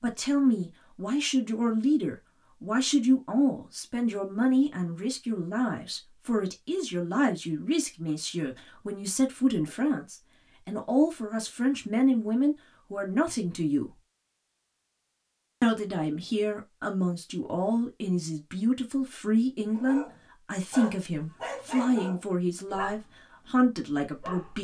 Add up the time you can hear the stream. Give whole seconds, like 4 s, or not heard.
not heard.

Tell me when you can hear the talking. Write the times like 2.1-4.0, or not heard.
0.0-13.9, 15.6-24.5.